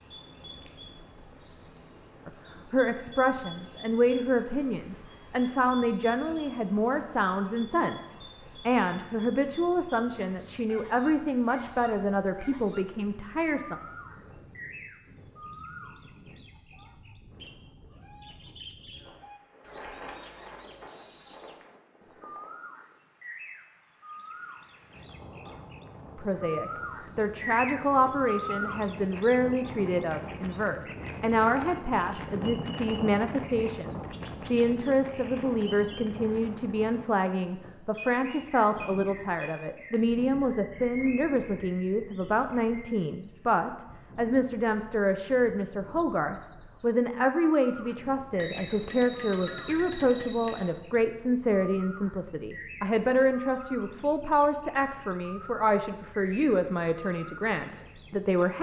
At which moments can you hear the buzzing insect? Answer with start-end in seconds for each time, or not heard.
not heard.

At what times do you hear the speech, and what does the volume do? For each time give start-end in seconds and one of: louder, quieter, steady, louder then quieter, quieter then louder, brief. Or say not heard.
2.2-13.8 steady
26.1-58.5 steady.